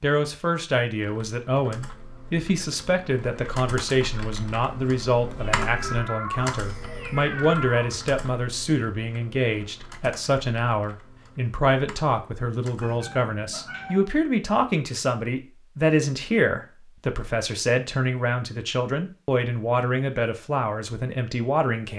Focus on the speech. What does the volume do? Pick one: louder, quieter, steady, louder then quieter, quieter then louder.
steady.